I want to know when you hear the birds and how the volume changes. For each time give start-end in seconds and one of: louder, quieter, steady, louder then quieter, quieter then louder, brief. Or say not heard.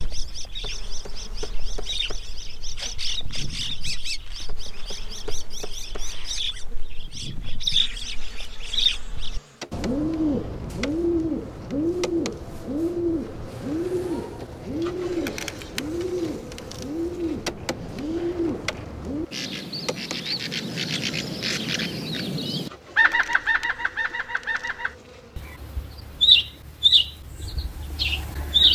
0.0-28.6 louder.